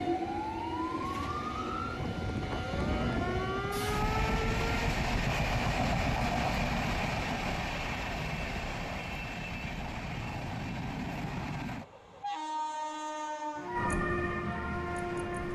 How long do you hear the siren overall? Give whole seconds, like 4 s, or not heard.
7 s.